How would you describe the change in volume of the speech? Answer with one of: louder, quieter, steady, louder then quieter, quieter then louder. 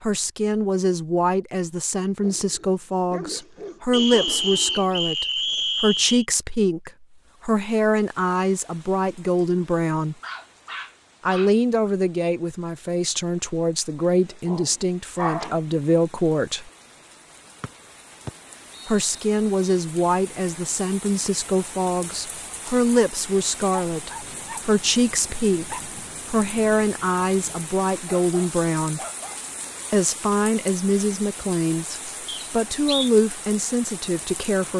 steady.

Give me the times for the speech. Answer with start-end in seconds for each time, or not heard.
0.0-10.2, 11.2-16.7, 18.9-29.0, 29.9-34.7.